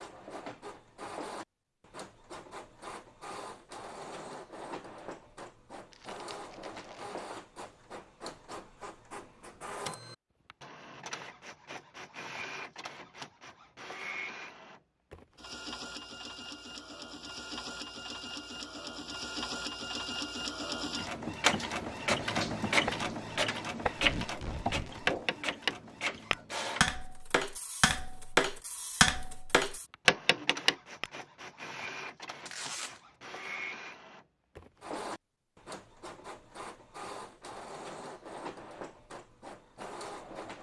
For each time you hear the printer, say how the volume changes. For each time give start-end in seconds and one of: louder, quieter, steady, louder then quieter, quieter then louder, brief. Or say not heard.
0.0-40.5 louder then quieter.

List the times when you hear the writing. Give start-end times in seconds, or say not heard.
not heard.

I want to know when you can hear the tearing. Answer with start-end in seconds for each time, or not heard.
5.9-7.2, 23.9-25.2, 32.5-33.0.